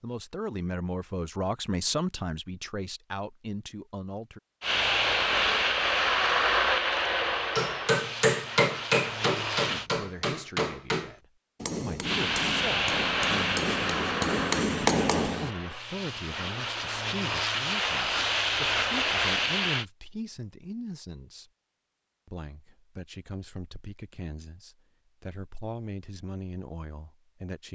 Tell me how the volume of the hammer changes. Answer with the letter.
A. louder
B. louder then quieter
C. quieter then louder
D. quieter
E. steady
C.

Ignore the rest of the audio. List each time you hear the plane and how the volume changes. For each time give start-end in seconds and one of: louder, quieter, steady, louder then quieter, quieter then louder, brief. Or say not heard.
4.6-9.9 quieter
12.0-19.9 quieter then louder.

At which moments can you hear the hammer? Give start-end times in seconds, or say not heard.
7.3-15.5.